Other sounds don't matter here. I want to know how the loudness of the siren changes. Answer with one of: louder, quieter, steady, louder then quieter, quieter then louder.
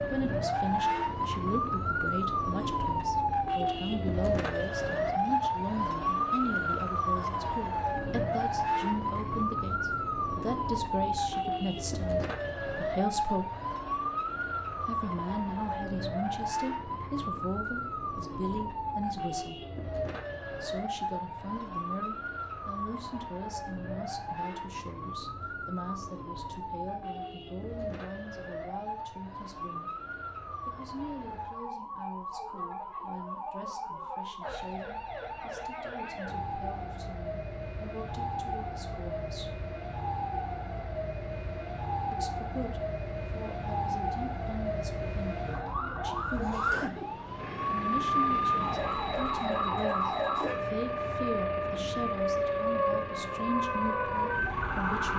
quieter then louder.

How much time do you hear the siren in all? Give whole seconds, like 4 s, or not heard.
55 s.